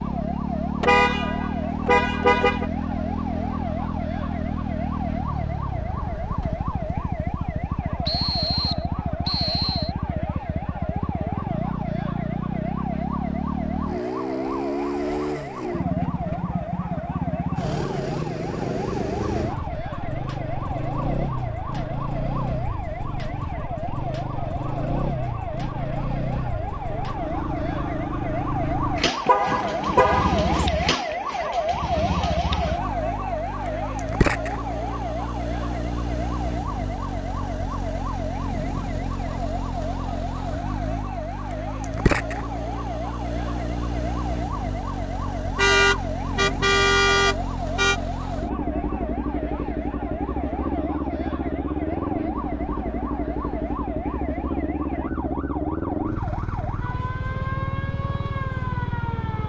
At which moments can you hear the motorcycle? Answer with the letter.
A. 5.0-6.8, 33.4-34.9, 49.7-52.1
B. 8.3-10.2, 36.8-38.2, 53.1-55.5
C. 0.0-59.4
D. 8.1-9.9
C.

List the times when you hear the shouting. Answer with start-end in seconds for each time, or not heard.
not heard.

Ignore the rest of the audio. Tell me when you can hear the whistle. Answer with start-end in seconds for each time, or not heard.
8.1-9.9.